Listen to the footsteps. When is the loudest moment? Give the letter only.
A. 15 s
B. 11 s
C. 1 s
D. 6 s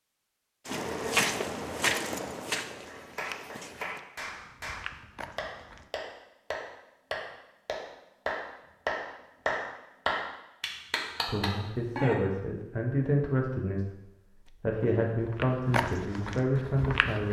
C.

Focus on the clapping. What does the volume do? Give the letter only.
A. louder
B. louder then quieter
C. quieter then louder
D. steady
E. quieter
A.